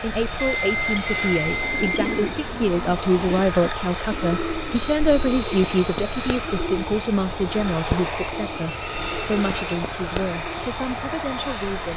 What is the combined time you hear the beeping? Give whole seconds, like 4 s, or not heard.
5 s.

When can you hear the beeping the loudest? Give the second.
1 s.